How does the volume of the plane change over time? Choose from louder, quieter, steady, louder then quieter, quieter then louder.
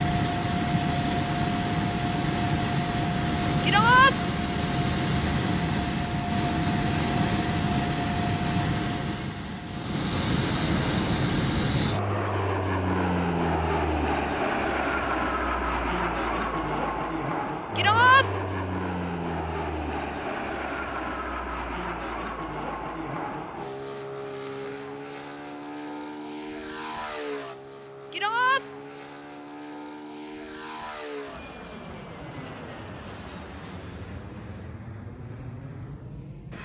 quieter.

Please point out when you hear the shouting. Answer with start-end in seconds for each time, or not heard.
3.6-4.2, 17.8-18.2, 28.1-28.6.